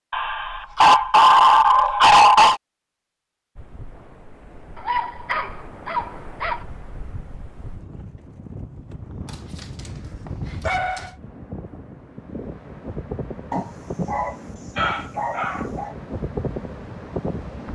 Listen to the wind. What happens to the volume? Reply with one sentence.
The volume of the wind goes up.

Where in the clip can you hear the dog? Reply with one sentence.
The dog can be heard from 0.1 to 2.6 s, from 4.8 to 6.6 s, from 9.2 to 11.1 s and from 13.5 to 15.9 s.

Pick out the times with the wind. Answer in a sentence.
You can hear the wind from 3.5 to 17.7 s.